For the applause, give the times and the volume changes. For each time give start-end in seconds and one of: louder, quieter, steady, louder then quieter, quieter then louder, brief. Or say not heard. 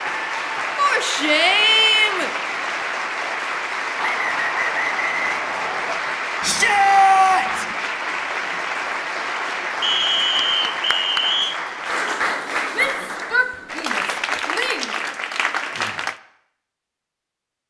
0.0-16.2 steady.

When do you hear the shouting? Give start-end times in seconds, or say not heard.
0.8-2.3, 6.4-7.7, 12.7-14.9.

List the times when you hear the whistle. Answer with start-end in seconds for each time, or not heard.
4.0-6.0, 9.8-11.6.